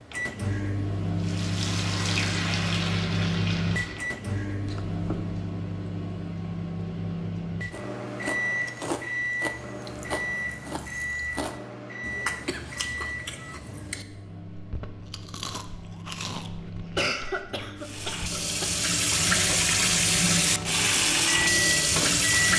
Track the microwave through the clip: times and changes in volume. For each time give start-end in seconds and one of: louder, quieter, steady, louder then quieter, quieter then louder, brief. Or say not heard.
0.1-22.5 quieter then louder.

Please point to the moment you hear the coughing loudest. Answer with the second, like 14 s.
17 s.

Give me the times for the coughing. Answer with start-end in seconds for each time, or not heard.
4.7-5.3, 12.4-13.1, 16.9-18.7.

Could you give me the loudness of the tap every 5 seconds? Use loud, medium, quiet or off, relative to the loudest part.
medium, off, off, loud, loud.